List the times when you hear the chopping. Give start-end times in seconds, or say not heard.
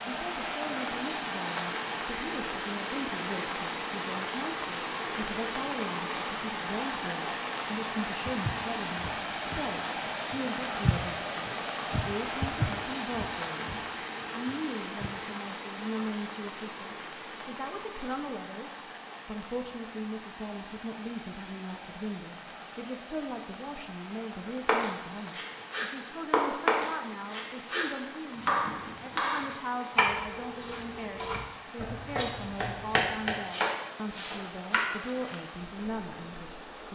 24.6-35.4.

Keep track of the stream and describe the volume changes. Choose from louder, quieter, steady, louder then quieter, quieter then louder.
quieter.